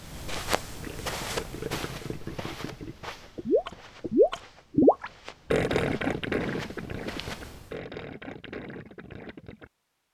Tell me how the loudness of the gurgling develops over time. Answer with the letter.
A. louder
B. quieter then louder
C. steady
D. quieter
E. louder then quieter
E.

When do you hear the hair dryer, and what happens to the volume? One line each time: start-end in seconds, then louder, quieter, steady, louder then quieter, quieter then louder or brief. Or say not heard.
not heard.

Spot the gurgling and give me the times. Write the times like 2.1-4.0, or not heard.
0.8-9.7.